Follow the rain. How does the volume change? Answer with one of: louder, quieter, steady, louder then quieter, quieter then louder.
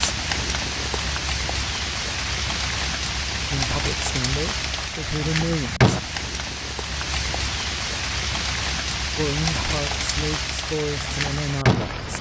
steady.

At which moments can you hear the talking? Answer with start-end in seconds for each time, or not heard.
3.5-6.0, 9.2-12.1.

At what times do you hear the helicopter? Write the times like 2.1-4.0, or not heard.
not heard.